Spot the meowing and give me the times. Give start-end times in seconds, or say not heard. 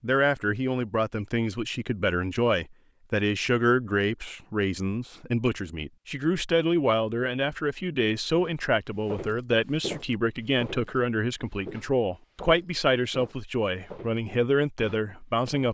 not heard.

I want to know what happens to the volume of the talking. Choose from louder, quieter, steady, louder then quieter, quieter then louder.
steady.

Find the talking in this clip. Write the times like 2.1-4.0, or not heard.
0.0-15.7.